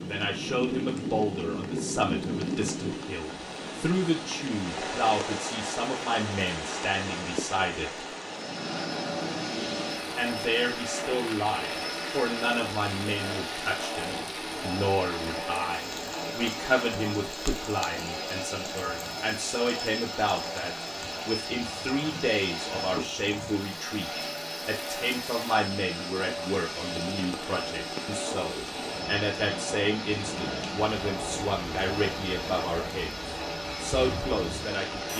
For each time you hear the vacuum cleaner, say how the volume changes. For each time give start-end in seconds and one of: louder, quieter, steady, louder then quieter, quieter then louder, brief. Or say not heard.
8.3-35.1 steady.